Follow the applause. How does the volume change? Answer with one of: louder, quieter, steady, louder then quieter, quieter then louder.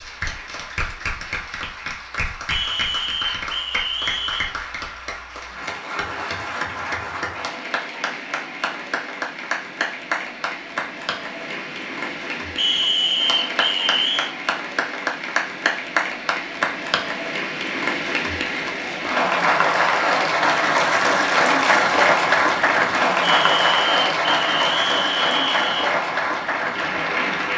louder.